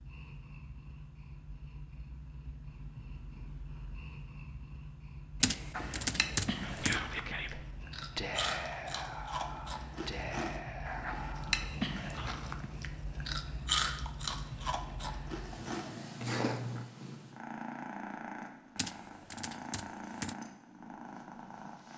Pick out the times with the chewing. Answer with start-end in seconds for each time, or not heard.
5.7-16.9.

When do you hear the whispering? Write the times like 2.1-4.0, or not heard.
6.6-12.4.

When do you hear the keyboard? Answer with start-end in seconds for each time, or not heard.
5.4-7.0, 18.8-20.4.